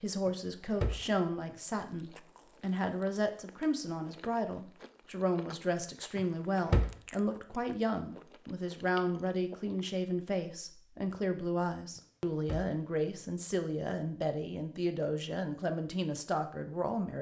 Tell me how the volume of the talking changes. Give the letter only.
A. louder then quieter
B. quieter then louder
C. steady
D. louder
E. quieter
C.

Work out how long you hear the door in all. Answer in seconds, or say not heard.
3 s.